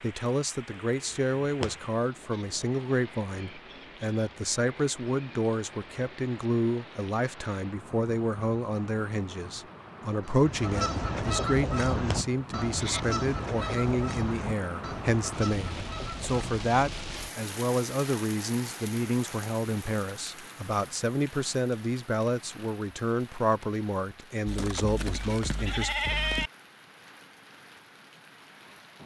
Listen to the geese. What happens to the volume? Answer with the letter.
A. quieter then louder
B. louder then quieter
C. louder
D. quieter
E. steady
D.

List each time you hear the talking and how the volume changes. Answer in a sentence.
The talking can be heard from 0.0 to 25.9 s, at a steady volume.